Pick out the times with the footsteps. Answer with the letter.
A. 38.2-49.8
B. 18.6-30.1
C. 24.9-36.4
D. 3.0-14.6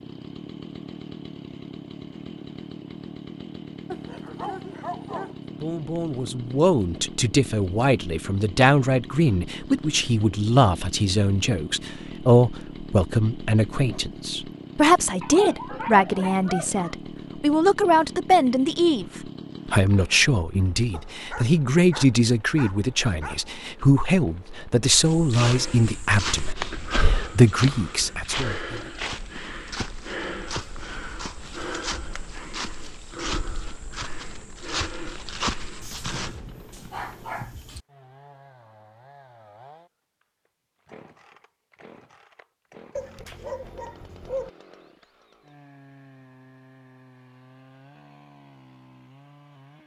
C.